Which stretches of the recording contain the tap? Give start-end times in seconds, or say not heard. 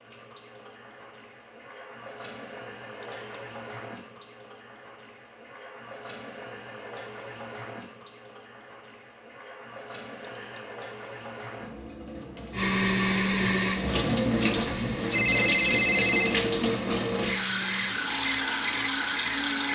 0.0-19.6.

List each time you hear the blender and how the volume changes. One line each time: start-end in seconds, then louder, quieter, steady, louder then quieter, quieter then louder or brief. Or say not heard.
12.5-19.6 quieter.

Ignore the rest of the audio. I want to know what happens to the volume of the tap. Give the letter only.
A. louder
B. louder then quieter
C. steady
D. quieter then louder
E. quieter
A.